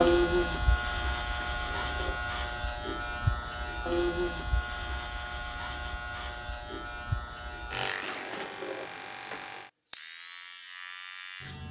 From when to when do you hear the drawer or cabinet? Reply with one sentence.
You can hear the drawer or cabinet from 1.4 to 2.2 s and from 8.0 to 9.0 s.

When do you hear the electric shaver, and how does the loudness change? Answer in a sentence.
The electric shaver can be heard from 0.0 to 11.6 s, getting quieter.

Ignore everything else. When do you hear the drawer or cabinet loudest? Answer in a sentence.
The volume of the drawer or cabinet peaks at 9 seconds.